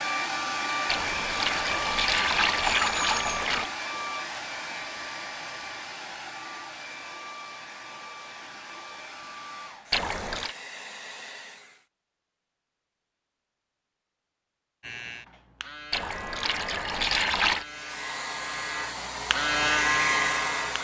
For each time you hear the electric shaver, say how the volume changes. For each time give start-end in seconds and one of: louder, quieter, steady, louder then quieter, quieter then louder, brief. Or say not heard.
14.8-20.7 louder.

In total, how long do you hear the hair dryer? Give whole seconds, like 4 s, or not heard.
15 s.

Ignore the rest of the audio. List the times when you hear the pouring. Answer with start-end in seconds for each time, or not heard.
0.8-3.7, 9.9-10.6, 15.9-17.6.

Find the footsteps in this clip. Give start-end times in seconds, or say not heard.
not heard.